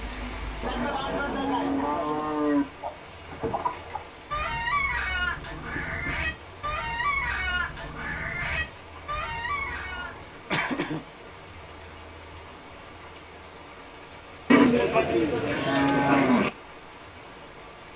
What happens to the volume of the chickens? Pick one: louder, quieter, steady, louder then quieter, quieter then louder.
steady.